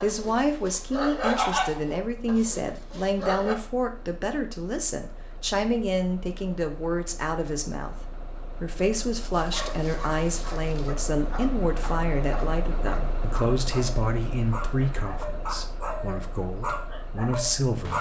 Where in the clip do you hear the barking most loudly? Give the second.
1 s.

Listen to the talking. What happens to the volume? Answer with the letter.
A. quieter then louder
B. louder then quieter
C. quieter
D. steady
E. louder
D.